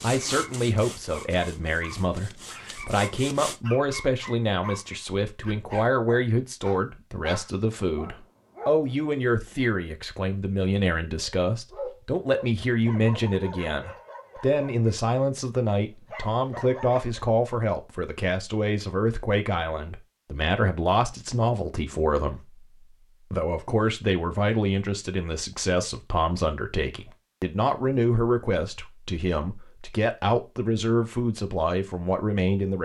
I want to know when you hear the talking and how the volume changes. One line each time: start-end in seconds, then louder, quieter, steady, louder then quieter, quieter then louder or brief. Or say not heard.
0.0-32.8 steady.